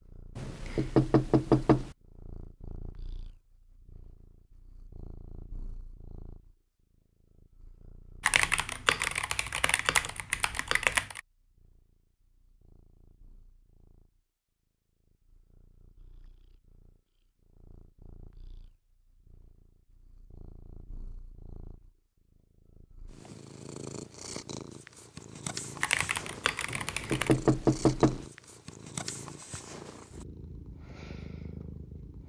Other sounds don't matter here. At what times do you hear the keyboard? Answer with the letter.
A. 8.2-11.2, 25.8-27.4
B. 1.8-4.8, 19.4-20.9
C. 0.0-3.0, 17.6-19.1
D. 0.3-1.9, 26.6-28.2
A.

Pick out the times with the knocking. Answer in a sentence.
You can hear the knocking from 0.3 to 1.9 s and from 26.6 to 28.2 s.